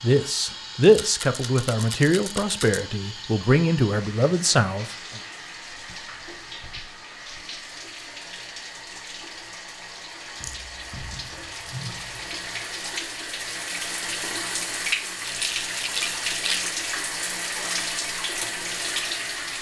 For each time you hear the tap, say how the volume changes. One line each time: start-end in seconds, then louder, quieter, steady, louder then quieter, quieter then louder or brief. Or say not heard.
0.0-19.5 louder.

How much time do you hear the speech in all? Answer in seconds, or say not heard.
5 s.